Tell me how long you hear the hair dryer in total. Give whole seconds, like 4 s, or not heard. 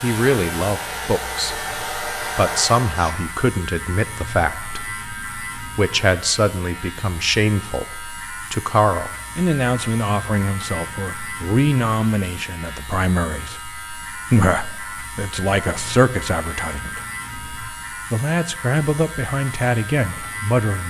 3 s.